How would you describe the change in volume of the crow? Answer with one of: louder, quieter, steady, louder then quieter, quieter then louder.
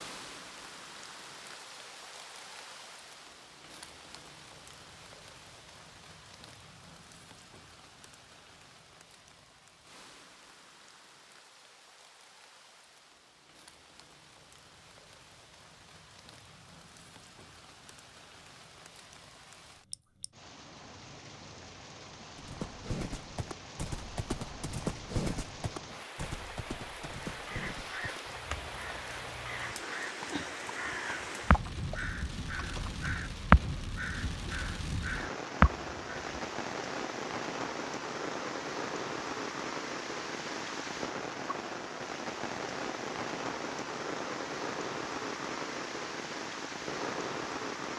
louder.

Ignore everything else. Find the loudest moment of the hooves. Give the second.
25 s.